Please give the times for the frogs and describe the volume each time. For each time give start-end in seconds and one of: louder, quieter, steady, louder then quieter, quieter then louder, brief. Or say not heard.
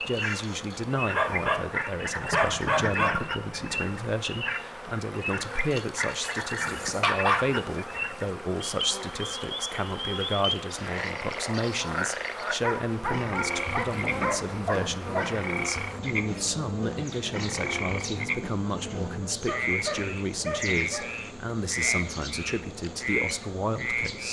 0.0-24.2 steady.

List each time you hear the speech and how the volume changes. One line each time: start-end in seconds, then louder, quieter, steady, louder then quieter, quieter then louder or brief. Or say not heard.
0.0-24.2 steady.